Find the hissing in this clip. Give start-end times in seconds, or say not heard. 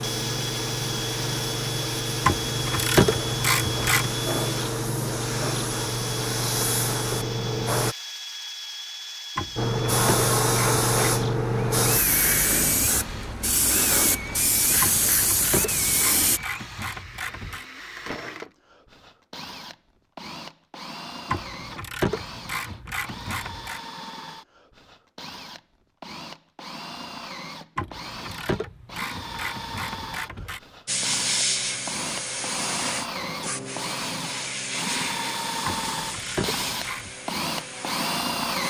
0.0-8.0, 9.6-16.4, 30.9-38.6.